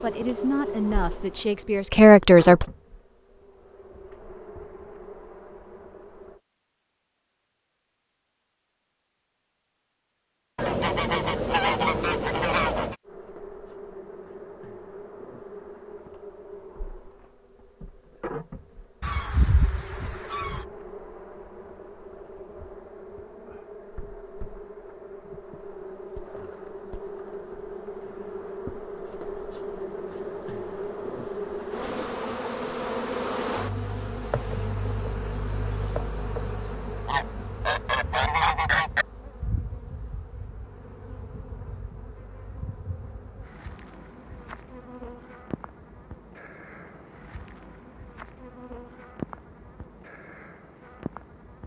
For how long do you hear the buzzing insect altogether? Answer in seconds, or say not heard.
45 s.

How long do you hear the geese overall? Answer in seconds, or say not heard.
6 s.